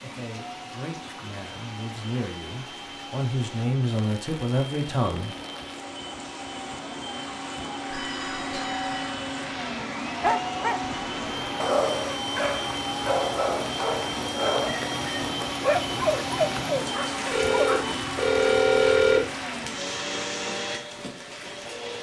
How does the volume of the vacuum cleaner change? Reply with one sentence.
The loudness of the vacuum cleaner goes up.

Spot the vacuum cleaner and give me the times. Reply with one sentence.
The vacuum cleaner can be heard from 0.0 to 21.9 s.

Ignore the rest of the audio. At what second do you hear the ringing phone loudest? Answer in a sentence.
The loudest moment of the ringing phone is at 19 seconds.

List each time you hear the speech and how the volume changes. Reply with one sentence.
You can hear the speech from 0.0 to 5.3 s, getting louder.